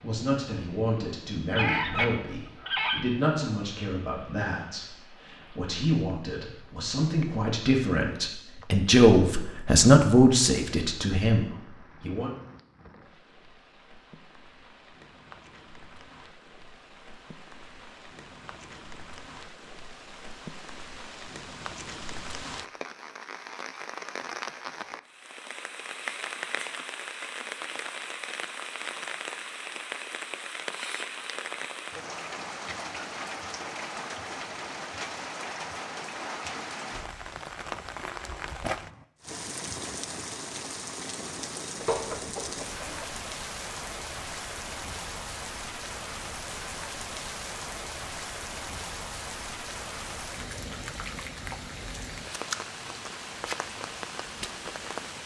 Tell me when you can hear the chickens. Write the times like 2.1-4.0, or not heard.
1.5-3.0, 41.8-43.2.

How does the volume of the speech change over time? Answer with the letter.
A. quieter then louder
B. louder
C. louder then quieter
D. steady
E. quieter
B.